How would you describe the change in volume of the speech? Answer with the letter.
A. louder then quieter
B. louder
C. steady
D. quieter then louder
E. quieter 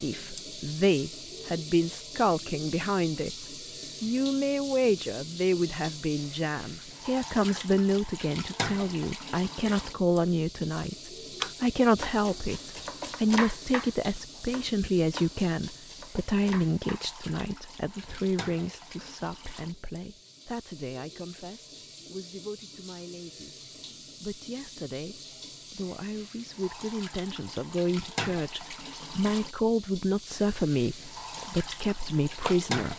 D.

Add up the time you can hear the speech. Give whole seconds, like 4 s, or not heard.
33 s.